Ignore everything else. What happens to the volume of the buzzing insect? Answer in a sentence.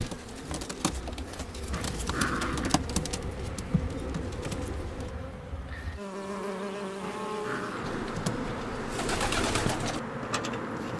The volume of the buzzing insect goes up.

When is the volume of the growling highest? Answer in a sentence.
The loudest moment of the growling is at 2 seconds.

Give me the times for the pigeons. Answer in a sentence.
You can hear the pigeons from 0.0 to 5.2 s and from 7.8 to 10.9 s.